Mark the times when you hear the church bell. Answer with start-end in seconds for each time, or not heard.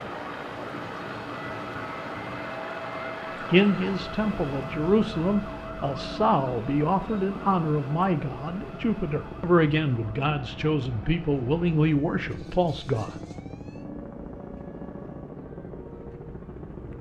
not heard.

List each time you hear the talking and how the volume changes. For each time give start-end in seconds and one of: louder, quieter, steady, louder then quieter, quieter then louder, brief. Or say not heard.
3.5-13.1 steady.